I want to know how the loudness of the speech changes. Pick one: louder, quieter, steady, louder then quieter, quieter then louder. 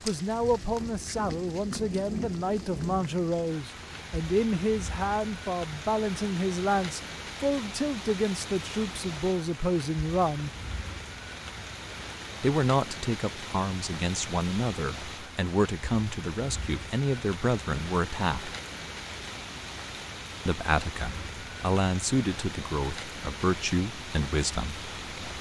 steady.